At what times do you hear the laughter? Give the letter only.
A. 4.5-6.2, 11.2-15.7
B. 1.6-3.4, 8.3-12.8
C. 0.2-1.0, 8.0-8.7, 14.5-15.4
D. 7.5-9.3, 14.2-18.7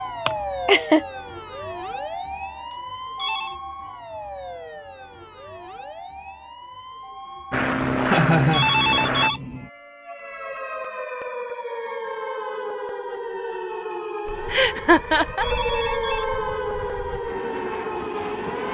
C.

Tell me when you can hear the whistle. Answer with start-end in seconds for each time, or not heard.
not heard.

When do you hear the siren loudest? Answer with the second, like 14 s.
16 s.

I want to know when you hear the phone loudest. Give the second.
9 s.